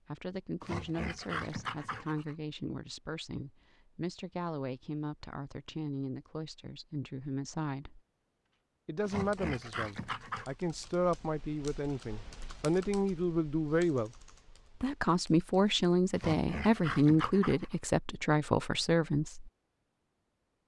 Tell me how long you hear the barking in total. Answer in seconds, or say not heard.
5 s.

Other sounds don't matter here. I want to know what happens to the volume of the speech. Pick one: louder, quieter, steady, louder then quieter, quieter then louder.
louder.